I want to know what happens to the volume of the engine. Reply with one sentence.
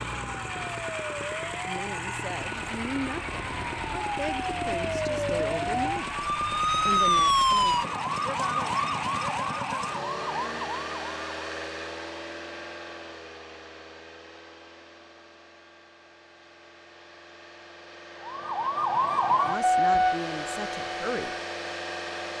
The loudness of the engine goes down, then up.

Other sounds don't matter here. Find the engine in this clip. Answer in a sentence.
You can hear the engine from 0.0 to 22.3 s.